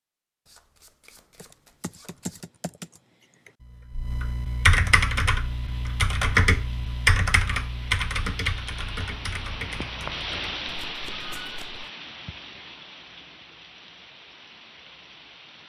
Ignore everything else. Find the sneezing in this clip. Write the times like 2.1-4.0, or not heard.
not heard.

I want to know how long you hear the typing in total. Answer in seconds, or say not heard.
9 s.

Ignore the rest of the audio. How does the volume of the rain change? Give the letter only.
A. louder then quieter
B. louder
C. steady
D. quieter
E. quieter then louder
A.